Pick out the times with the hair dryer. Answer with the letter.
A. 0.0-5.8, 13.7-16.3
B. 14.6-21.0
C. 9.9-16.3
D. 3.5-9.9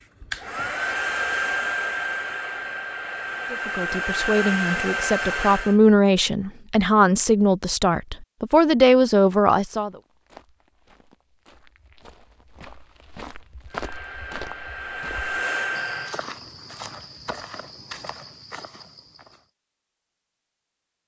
A.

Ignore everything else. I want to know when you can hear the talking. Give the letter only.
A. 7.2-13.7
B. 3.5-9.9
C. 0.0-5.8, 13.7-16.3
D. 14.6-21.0
B.